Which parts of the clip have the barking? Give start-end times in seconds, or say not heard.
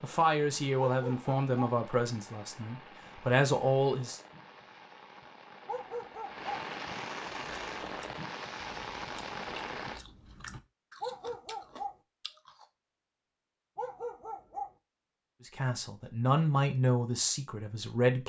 0.8-1.8, 5.7-6.5, 11.0-11.9, 13.8-14.7.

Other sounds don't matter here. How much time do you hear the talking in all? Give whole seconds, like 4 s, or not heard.
7 s.